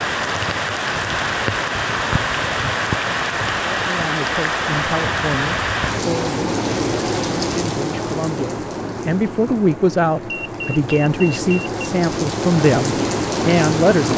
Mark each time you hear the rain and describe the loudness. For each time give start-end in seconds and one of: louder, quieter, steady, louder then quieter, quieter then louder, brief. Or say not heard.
0.0-14.1 quieter then louder.